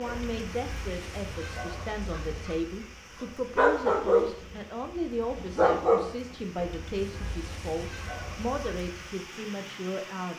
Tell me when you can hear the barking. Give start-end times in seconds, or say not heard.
0.0-9.1.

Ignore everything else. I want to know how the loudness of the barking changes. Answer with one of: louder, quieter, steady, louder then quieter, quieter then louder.
louder then quieter.